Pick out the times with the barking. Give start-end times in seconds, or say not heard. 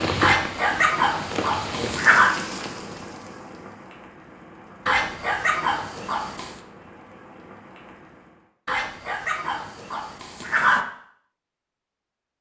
0.2-2.4, 4.8-6.6, 8.7-10.8.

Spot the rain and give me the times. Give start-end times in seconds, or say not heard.
0.0-8.5.